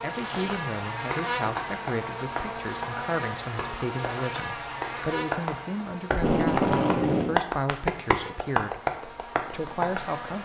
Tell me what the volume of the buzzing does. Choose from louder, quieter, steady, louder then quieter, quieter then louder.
quieter.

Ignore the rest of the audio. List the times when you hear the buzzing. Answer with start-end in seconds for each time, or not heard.
0.0-10.4.